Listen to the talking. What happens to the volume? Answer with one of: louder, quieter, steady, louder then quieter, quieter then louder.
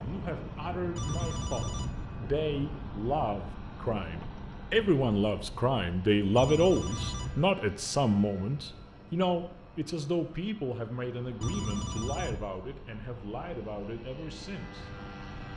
louder then quieter.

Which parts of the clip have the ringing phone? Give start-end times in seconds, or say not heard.
0.9-2.0, 6.3-7.5, 11.4-12.5.